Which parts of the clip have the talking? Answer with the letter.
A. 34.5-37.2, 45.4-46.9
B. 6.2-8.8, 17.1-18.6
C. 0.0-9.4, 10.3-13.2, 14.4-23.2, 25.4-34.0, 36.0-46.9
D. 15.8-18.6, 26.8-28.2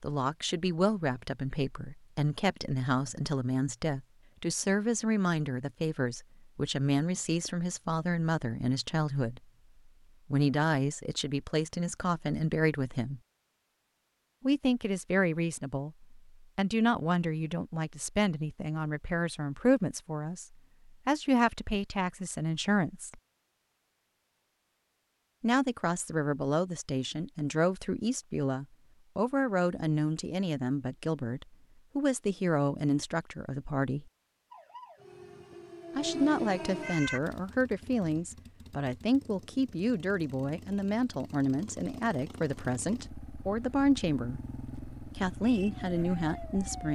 C.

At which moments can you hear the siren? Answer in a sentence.
The siren can be heard from 34.5 to 37.2 s and from 45.4 to 46.9 s.